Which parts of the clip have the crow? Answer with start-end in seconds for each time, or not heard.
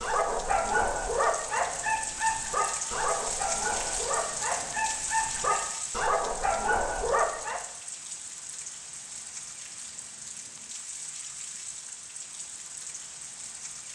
not heard.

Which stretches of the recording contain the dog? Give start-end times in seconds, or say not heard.
0.0-7.6.